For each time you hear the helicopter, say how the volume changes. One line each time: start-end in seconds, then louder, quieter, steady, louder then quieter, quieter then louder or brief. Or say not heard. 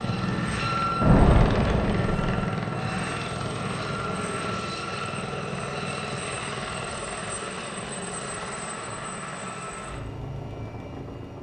0.0-11.3 quieter.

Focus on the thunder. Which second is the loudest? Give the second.
1 s.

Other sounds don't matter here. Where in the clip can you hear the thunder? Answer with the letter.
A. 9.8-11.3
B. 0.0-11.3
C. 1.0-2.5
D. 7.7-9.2
C.